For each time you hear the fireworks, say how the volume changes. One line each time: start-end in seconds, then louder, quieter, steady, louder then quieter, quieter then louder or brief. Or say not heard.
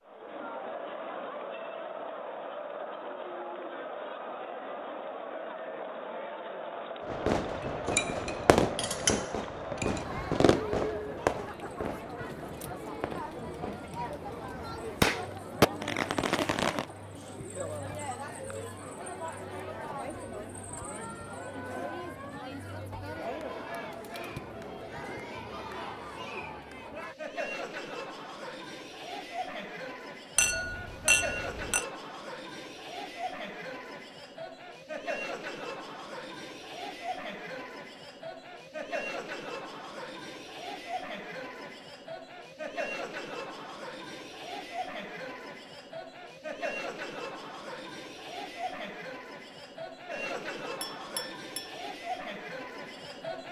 7.0-16.9 quieter then louder.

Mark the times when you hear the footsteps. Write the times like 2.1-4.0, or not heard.
not heard.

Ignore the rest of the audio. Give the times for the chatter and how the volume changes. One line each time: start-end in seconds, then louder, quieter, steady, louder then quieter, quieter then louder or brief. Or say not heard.
0.1-53.4 steady.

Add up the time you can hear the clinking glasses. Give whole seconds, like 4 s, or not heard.
5 s.